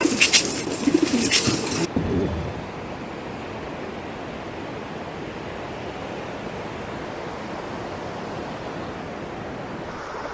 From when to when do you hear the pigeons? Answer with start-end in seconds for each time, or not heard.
0.0-2.6.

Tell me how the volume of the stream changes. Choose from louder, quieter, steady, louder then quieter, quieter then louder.
steady.